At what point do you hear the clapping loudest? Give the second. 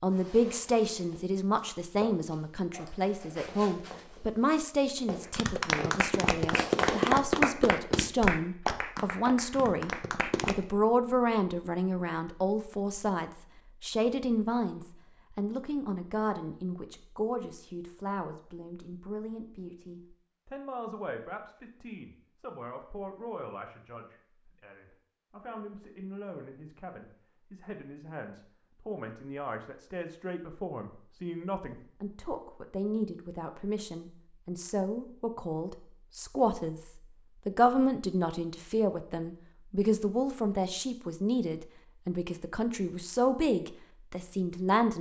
7 s.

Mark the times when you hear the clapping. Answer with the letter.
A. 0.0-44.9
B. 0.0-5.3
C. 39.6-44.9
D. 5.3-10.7
D.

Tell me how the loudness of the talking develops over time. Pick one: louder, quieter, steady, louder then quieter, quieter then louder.
quieter then louder.